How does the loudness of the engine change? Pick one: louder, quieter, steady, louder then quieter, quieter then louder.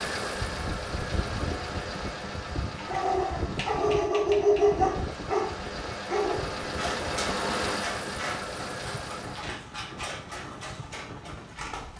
quieter then louder.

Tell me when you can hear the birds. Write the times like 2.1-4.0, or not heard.
not heard.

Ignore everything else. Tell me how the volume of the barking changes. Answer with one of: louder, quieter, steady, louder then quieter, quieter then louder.
quieter.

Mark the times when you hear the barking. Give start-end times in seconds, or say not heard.
2.8-11.9.